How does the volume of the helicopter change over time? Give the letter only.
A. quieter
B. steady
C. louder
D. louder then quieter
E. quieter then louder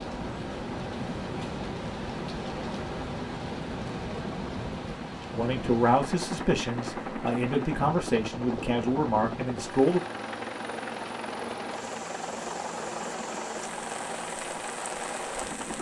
B.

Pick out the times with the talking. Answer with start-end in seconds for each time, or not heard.
5.3-10.0.